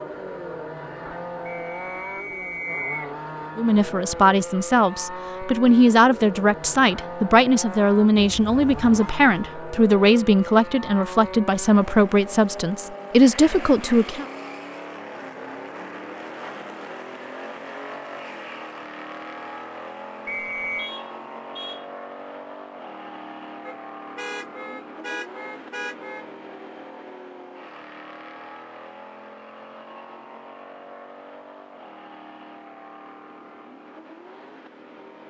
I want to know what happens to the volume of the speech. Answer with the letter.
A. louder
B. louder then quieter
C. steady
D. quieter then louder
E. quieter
C.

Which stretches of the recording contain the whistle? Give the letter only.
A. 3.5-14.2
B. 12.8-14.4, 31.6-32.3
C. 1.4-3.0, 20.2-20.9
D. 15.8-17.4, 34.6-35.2
C.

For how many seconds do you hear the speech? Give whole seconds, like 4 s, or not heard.
11 s.